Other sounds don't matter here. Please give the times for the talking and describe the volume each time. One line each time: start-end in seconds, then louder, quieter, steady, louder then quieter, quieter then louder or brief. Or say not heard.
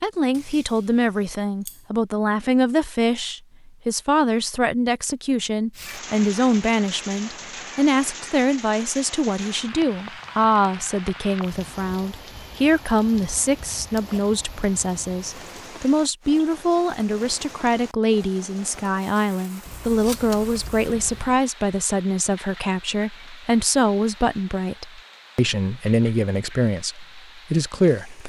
0.0-28.2 steady.